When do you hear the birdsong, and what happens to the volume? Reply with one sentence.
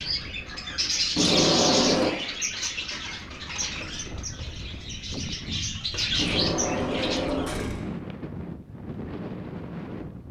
The birdsong can be heard from 0.0 to 7.5 s, getting quieter then louder.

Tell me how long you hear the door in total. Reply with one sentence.
You can hear the door for 3 seconds altogether.